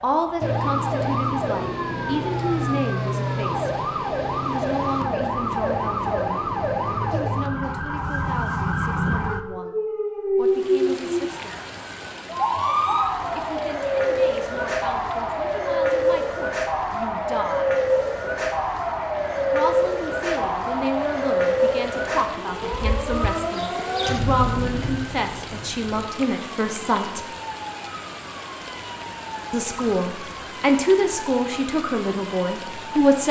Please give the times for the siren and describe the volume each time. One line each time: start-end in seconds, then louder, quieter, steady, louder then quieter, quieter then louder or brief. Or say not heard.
0.0-33.2 quieter.